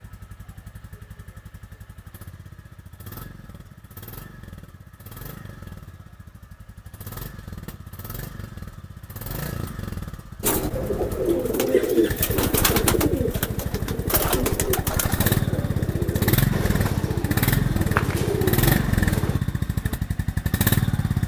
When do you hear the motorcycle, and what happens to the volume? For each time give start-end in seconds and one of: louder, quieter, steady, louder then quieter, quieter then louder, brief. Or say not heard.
0.0-21.2 louder.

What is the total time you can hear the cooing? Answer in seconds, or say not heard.
9 s.